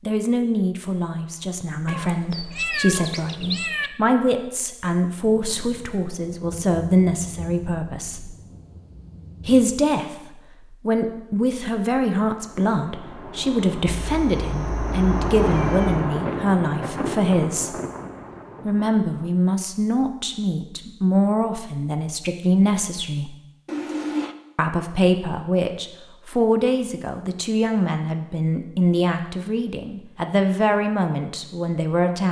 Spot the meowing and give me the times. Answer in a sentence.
The meowing can be heard from 1.9 to 3.9 s, from 14.1 to 16.1 s and from 23.6 to 24.4 s.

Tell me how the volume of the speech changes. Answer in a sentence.
The loudness of the speech stays about the same.